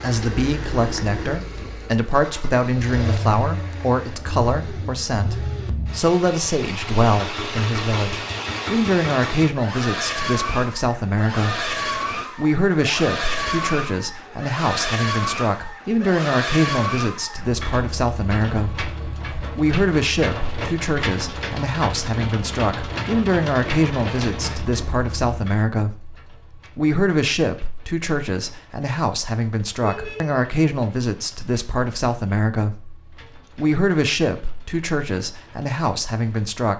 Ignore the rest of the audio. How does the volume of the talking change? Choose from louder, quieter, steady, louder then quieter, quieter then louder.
steady.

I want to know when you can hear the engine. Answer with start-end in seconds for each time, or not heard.
0.0-36.6.